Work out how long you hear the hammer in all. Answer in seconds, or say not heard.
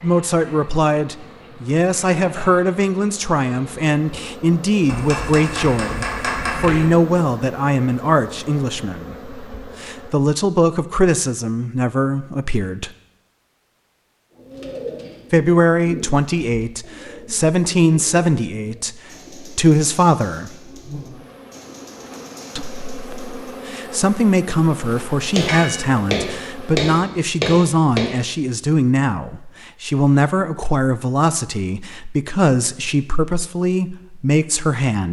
5 s.